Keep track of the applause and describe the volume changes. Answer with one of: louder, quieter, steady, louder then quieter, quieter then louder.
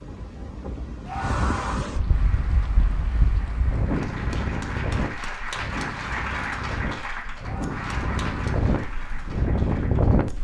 louder then quieter.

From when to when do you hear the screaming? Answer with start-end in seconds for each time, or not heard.
1.1-1.9, 7.4-8.6.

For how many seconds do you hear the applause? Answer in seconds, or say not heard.
8 s.